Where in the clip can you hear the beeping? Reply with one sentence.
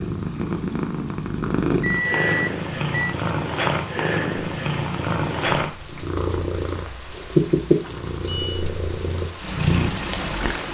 The beeping can be heard from 1.8 to 3.1 s and from 7.8 to 8.7 s.